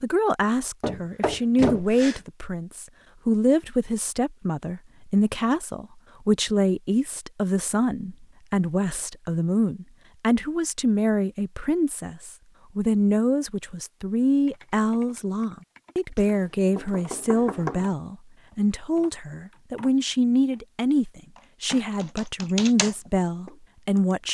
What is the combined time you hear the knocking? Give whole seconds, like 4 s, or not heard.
3 s.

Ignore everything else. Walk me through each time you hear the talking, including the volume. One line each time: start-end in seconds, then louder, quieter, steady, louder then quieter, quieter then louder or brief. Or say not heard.
0.0-24.2 steady.